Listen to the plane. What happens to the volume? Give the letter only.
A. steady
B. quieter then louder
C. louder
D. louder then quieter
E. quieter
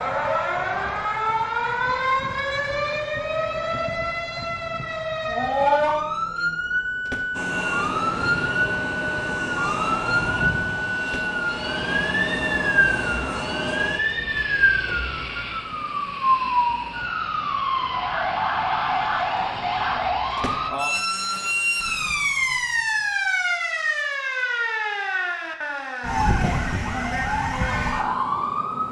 E.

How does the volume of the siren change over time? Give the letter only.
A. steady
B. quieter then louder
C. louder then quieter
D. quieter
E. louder
A.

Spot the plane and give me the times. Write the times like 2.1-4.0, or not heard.
7.3-20.7.